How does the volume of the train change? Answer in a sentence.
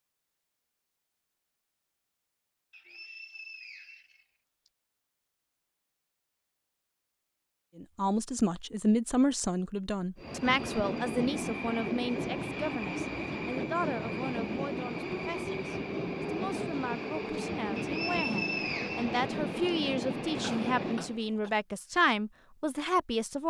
The loudness of the train stays about the same.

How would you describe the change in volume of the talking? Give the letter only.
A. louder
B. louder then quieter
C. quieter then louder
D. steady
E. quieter
C.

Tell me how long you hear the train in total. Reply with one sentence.
You can hear the train for 11 seconds altogether.